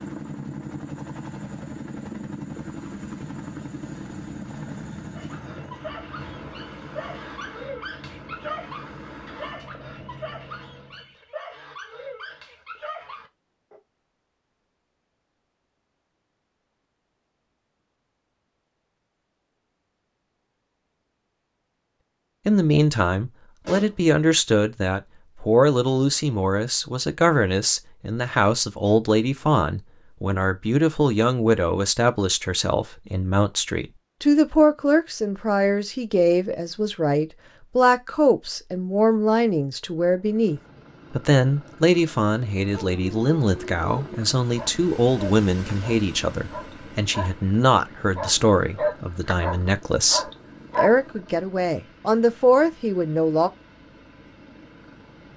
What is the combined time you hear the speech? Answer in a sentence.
You can hear the speech for 31 seconds altogether.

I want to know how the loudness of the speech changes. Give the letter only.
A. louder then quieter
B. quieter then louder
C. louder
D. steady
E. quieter
D.